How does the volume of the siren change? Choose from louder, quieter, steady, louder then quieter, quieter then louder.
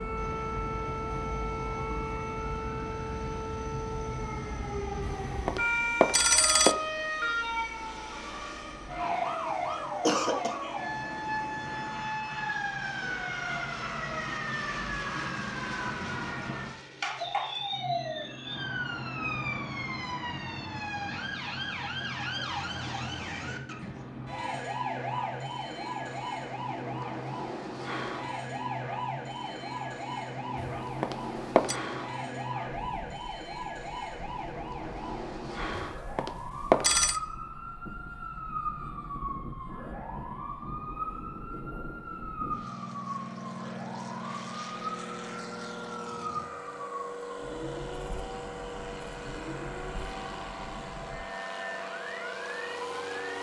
quieter.